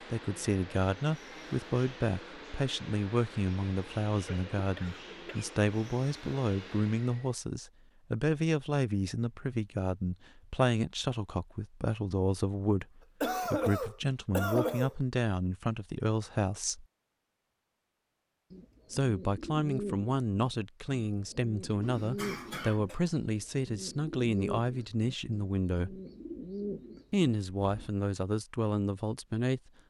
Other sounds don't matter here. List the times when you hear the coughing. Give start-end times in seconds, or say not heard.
4.2-5.5, 13.2-14.9, 21.8-23.0.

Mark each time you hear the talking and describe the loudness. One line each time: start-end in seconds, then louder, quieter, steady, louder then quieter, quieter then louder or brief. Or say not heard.
0.1-16.9 steady
18.9-26.0 steady
27.1-29.6 brief.